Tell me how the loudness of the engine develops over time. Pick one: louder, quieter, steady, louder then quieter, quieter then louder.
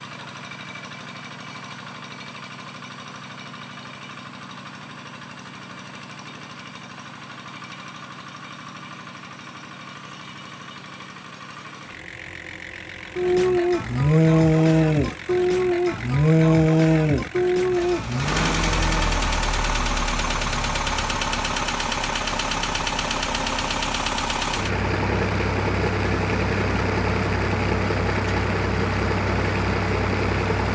louder.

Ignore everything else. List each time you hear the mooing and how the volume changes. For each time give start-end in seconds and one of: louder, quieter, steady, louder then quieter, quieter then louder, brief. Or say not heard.
13.2-19.4 quieter.